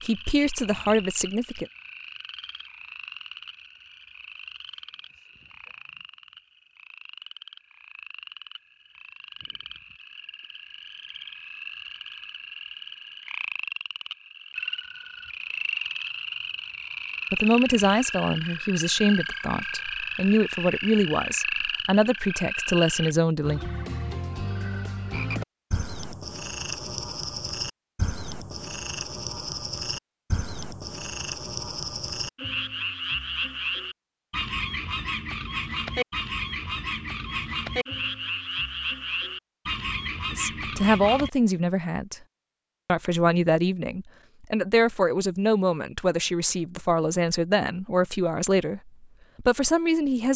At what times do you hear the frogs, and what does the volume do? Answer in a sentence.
You can hear the frogs from 0.0 to 41.3 s, getting louder.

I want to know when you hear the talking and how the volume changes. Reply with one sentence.
You can hear the talking briefly from 0.0 to 1.6 s; from 17.3 to 23.6 s, at a steady volume; briefly from 40.3 to 42.2 s; and from 42.9 to 50.3 s, at a steady volume.